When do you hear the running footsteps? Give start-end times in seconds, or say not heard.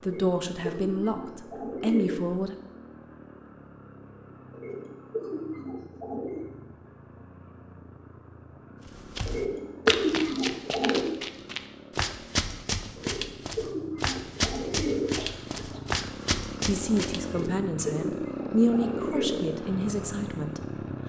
8.8-17.4.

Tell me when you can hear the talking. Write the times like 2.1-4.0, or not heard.
0.0-2.5, 16.6-20.6.